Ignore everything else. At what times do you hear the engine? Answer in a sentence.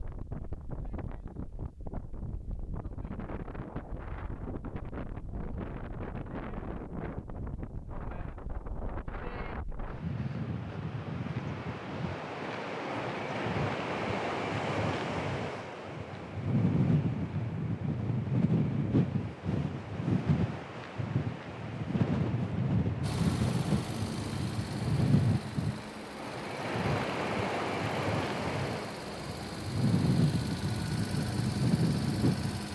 The engine can be heard from 23.0 to 32.7 s.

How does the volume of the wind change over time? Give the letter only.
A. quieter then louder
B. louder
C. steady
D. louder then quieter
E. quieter
B.